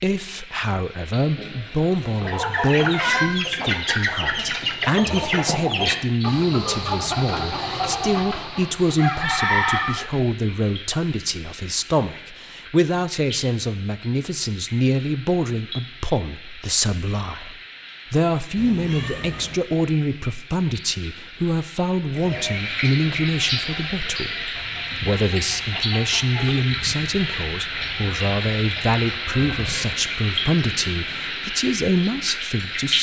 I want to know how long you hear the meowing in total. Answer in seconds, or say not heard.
5 s.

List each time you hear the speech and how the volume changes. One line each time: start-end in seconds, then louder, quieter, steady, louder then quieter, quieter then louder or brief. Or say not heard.
0.0-32.9 steady.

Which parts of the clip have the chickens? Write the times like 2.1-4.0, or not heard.
2.1-10.1, 22.1-30.0.